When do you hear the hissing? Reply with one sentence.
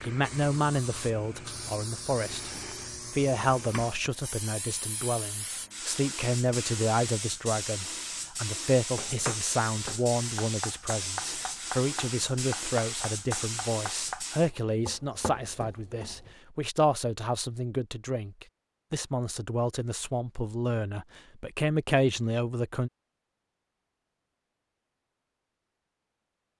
The hissing can be heard from 0.0 to 14.5 s.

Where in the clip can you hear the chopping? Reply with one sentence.
You can hear the chopping from 8.9 to 16.4 s.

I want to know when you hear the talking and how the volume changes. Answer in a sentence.
The talking can be heard briefly from 0.0 to 2.5 s; and from 3.1 to 22.9 s, at a steady volume.